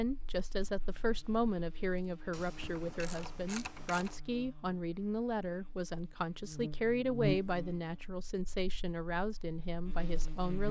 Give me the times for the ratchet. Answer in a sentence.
The ratchet can be heard from 2.3 to 4.2 s.